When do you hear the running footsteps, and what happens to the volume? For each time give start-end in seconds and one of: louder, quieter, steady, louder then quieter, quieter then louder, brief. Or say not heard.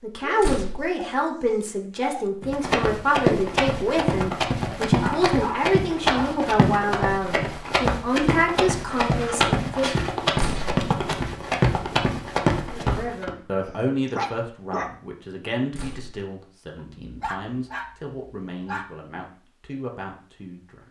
2.4-13.3 steady.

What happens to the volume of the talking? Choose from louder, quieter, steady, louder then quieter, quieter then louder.
quieter.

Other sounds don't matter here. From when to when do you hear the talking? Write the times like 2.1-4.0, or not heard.
0.0-10.0, 12.7-20.8.